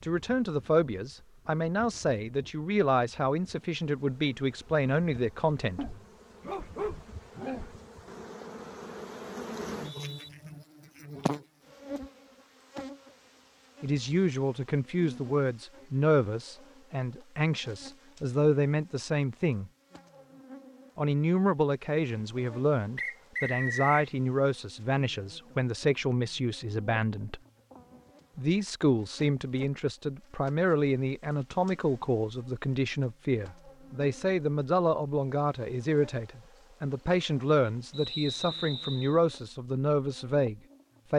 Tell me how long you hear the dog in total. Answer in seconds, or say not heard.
2 s.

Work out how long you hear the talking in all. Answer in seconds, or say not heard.
31 s.